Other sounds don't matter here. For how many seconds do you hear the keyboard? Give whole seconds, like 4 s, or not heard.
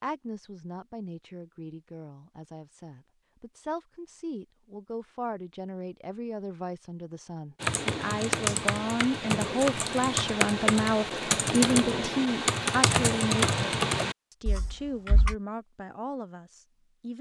8 s.